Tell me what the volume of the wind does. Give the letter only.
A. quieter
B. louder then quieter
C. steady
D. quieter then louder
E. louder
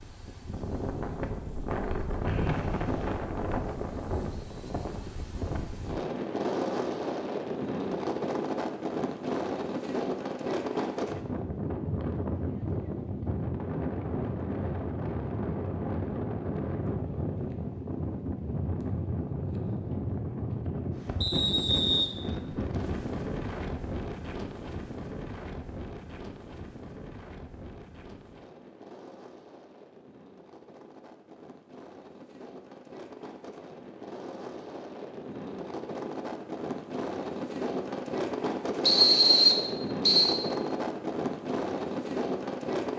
D.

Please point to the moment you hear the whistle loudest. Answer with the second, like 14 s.
39 s.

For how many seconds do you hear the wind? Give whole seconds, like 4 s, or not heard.
43 s.